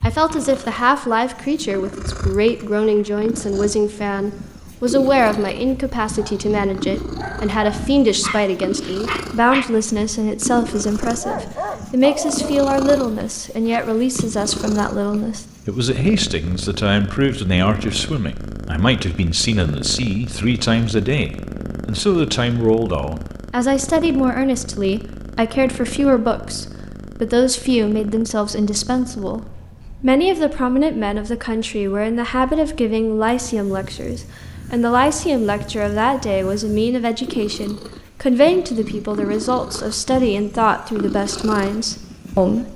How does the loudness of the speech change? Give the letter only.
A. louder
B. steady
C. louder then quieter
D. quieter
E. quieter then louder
B.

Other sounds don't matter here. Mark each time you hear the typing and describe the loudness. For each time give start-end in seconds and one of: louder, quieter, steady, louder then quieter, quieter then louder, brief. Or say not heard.
not heard.